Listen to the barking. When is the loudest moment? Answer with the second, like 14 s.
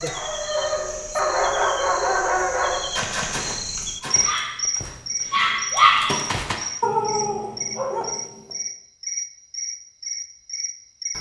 6 s.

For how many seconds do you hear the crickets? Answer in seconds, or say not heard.
11 s.